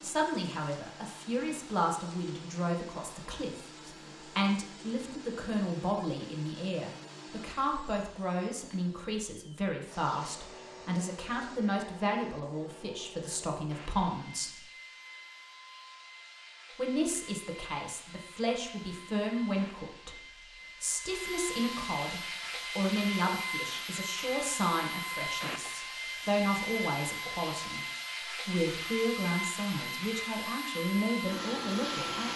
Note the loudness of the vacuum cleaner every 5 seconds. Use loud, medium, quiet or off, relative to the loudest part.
quiet, quiet, quiet, quiet, loud, loud, loud.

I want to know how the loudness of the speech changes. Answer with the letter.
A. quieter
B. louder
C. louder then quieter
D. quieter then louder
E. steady
E.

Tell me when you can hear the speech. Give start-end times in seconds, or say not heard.
0.0-14.6, 16.8-20.1, 20.8-27.8, 28.4-32.3.